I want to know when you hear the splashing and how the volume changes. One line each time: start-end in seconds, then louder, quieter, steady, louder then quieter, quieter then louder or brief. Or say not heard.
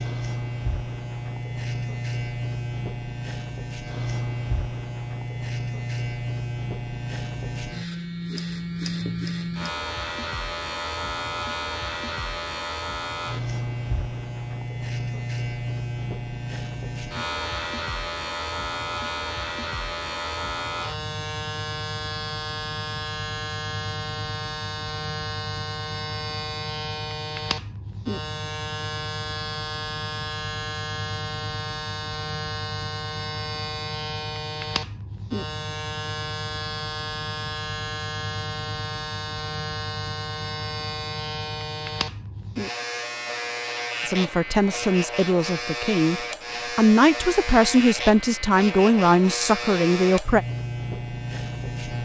not heard.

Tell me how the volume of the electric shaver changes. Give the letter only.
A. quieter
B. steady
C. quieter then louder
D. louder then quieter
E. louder
B.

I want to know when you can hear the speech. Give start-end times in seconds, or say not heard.
44.0-50.5.